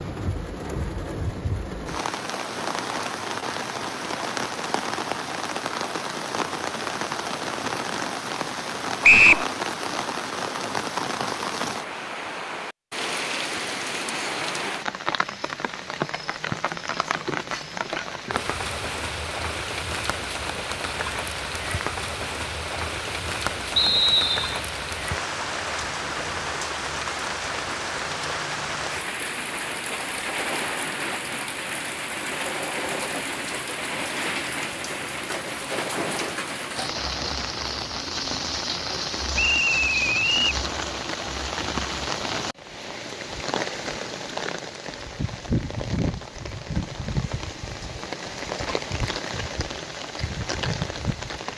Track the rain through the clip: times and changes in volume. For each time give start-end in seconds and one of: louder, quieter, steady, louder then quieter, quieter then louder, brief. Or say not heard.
0.0-51.5 steady.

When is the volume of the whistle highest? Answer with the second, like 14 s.
9 s.